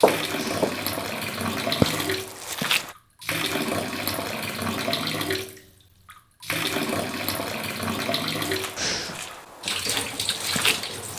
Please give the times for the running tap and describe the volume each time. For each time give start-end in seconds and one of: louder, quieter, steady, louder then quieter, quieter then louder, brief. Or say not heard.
0.0-11.1 steady.